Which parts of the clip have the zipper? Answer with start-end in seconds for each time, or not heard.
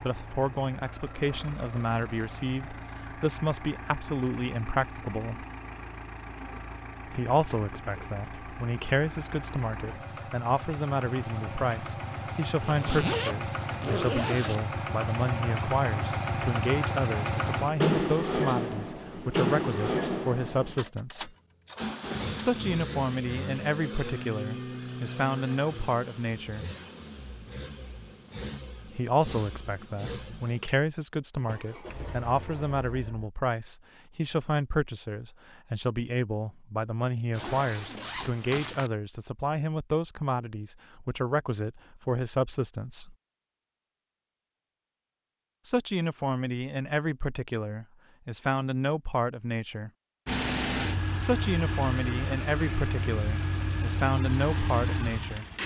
12.6-14.7, 37.3-38.9.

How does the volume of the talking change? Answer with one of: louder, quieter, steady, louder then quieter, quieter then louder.
steady.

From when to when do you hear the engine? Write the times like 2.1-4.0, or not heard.
0.0-33.3, 50.2-55.6.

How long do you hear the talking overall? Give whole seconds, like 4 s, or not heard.
47 s.